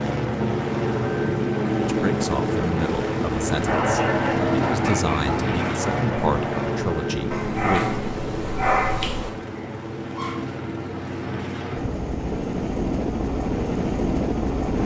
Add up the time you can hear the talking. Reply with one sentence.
You can hear the talking for 6 seconds altogether.